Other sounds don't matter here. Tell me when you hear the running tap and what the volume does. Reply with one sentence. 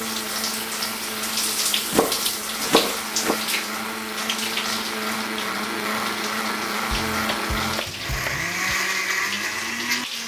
The running tap can be heard from 0.0 to 10.2 s, getting quieter.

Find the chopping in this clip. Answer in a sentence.
You can hear the chopping from 1.9 to 3.4 s and from 6.9 to 8.6 s.